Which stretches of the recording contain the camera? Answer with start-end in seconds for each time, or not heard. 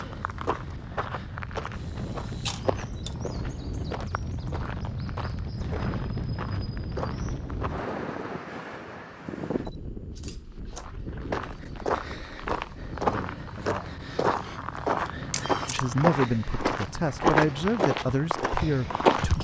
1.8-3.1, 9.7-10.8, 15.3-15.8.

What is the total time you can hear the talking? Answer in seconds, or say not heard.
5 s.